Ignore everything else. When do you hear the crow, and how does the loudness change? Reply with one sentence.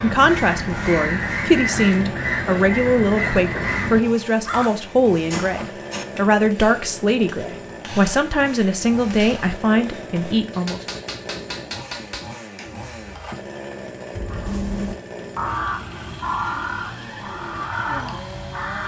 You can hear the crow from 0.0 to 4.7 s, at a steady volume; and from 14.1 to 18.8 s, getting quieter then louder.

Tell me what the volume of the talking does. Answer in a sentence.
The volume of the talking stays about the same.